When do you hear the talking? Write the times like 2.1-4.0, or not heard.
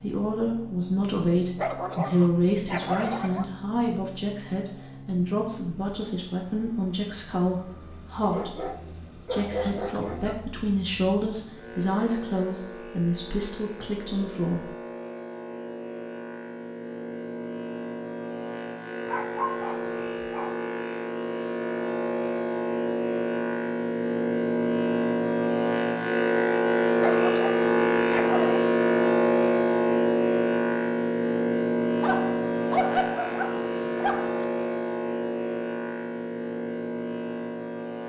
0.0-14.7.